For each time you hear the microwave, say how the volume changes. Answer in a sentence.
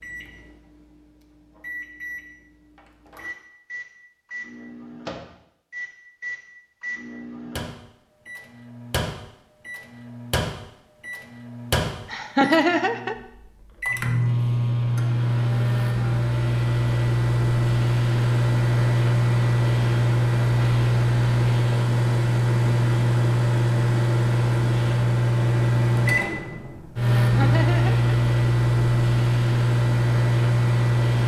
The microwave can be heard from 0.0 to 31.2 s, getting louder.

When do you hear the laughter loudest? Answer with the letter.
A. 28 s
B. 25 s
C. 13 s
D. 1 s
C.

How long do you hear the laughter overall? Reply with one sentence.
The laughter can be heard for 2 seconds in total.